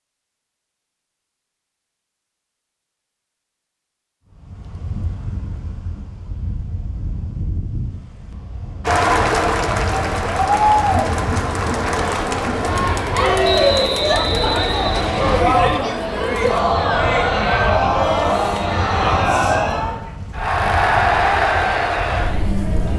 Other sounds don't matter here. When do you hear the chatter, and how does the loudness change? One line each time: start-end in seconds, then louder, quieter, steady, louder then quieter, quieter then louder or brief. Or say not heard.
8.8-22.9 steady.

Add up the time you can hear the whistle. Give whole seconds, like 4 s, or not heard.
2 s.